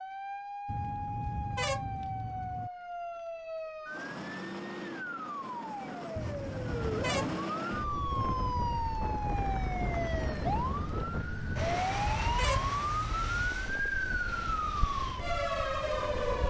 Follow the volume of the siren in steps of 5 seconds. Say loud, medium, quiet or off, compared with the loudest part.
medium, loud, loud, loud.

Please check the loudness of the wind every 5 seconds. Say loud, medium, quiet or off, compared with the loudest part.
off, loud, loud, loud.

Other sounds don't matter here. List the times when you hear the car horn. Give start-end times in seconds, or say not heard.
0.7-2.7, 6.2-7.5, 11.7-13.5.